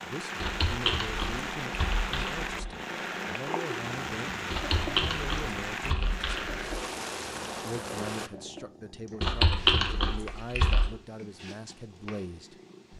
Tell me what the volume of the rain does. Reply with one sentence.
The volume of the rain stays about the same.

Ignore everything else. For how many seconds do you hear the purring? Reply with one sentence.
You can hear the purring for 13 seconds altogether.